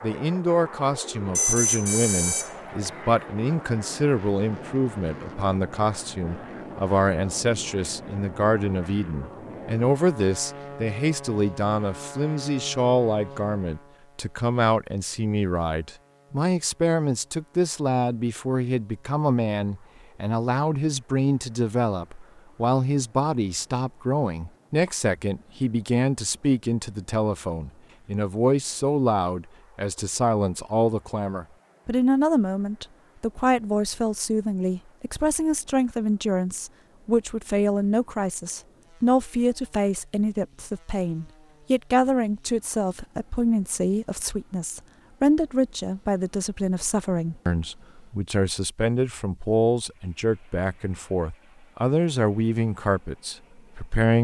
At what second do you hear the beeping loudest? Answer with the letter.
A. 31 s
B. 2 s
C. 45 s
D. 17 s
B.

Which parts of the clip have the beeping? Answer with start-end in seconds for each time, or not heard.
1.4-3.2.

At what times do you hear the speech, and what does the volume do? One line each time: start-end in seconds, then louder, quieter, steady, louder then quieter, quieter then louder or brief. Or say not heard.
0.0-54.2 steady.